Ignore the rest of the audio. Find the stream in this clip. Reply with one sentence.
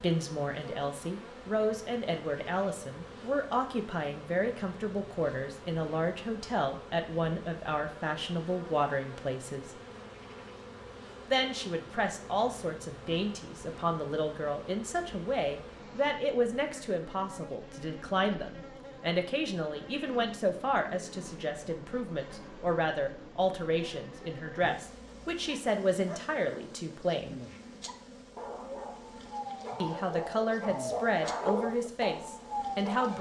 The stream can't be heard in this clip.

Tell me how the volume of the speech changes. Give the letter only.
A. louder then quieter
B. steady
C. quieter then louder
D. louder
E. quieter
B.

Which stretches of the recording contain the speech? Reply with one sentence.
The speech can be heard from 0.0 to 9.8 s, from 11.2 to 27.4 s and from 29.8 to 33.1 s.